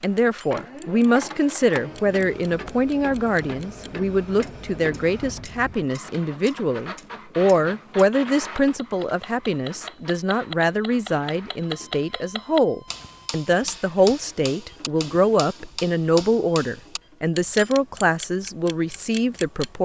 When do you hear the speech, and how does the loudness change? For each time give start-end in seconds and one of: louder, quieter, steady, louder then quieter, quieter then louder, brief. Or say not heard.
0.0-19.8 steady.